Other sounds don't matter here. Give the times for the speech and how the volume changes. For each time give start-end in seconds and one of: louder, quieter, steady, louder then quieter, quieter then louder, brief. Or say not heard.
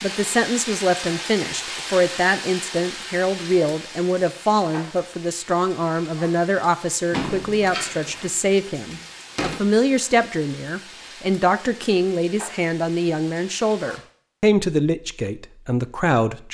0.0-16.4 steady.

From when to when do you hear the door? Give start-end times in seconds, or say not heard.
7.1-9.6.